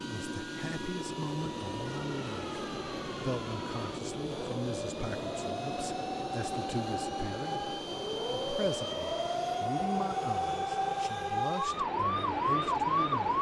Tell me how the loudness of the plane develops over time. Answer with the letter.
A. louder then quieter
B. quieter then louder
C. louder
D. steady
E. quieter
D.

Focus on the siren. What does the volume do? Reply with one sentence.
The volume of the siren goes up.